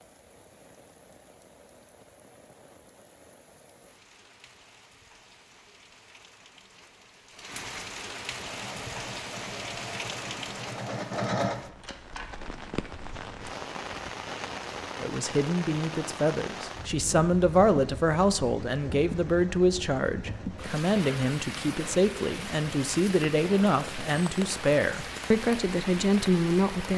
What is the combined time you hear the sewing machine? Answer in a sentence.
You can hear the sewing machine for 4 seconds altogether.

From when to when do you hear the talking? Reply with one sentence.
The talking can be heard from 15.0 to 26.9 s.